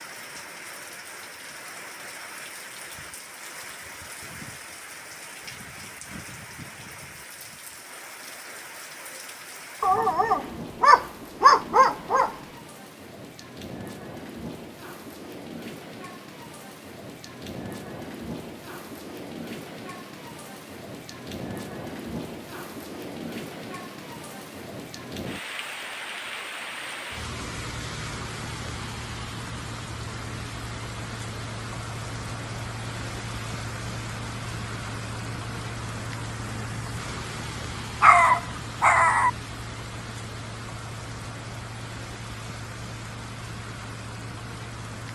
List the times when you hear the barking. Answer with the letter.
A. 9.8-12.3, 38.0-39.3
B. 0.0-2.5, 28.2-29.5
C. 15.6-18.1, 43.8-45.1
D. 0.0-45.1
A.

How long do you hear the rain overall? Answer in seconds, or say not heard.
45 s.